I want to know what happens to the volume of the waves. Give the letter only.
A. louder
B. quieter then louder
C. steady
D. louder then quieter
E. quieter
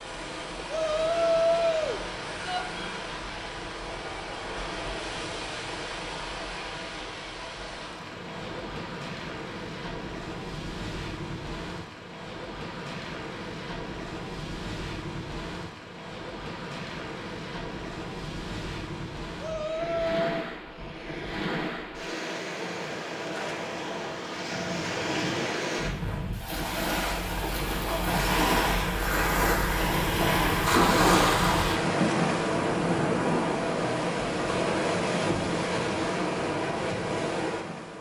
A.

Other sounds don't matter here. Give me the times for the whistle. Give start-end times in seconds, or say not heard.
not heard.